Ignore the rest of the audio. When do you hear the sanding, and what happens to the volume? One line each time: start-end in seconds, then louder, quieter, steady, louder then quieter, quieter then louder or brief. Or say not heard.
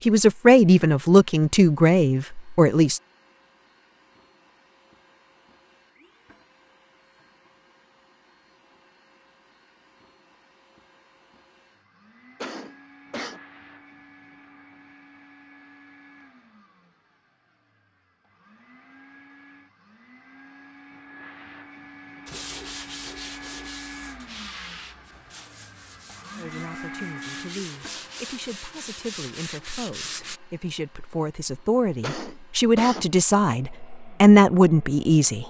22.2-30.4 quieter then louder.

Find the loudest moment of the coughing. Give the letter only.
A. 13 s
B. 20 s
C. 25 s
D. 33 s
D.